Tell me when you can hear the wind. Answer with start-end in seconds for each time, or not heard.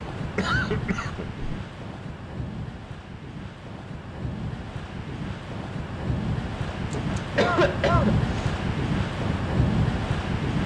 0.0-10.6.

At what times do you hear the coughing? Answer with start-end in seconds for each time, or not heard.
0.1-1.4, 6.7-8.6.